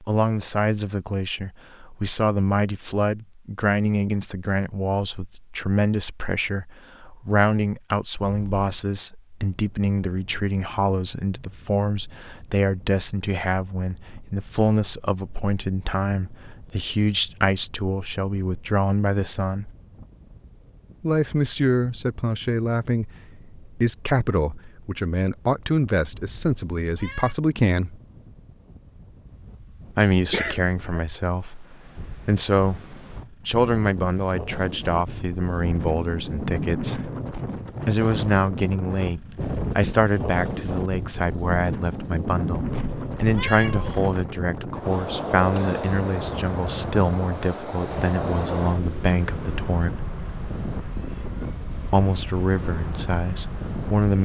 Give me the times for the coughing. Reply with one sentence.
You can hear the coughing from 30.3 to 31.0 s.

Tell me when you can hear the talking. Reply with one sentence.
You can hear the talking from 0.0 to 19.7 s, from 21.0 to 28.0 s, from 29.9 to 37.1 s, from 37.9 to 50.0 s and from 51.9 to 54.2 s.